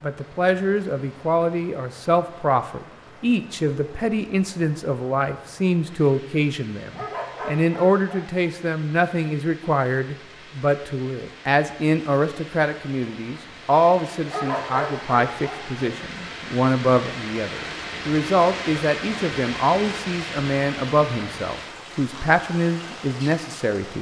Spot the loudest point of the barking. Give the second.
15 s.